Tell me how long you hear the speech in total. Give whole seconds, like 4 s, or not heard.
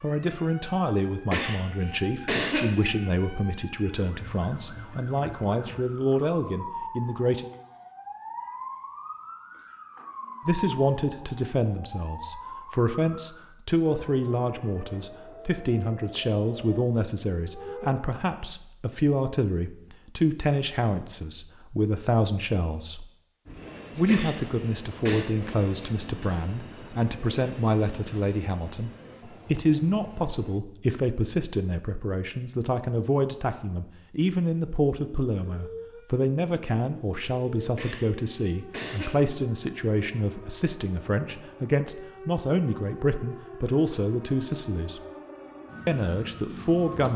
42 s.